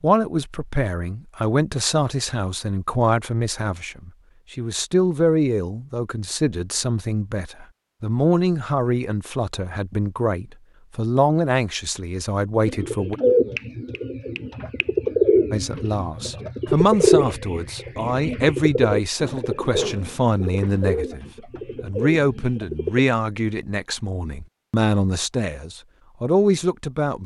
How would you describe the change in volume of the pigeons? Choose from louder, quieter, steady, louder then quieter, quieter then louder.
quieter.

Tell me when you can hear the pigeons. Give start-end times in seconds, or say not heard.
12.7-23.0.